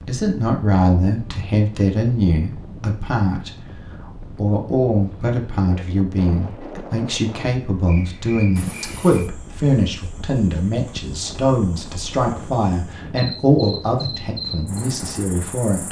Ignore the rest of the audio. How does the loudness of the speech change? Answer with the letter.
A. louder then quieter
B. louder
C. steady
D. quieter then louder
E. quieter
C.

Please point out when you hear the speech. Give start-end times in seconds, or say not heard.
0.0-15.8.